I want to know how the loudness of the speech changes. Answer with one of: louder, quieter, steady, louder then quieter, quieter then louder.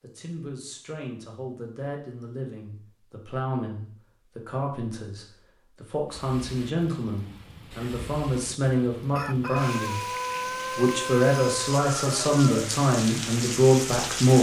louder.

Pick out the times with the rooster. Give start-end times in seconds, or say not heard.
9.1-12.7.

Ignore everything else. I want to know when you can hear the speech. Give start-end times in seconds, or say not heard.
0.0-10.1, 10.7-14.3.